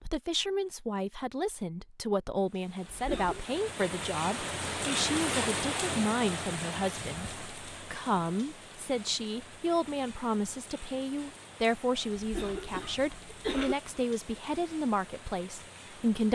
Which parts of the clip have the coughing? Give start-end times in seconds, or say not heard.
2.9-3.5, 12.2-13.8.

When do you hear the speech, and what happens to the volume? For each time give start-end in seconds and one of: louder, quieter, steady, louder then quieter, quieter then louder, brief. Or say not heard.
0.0-16.3 steady.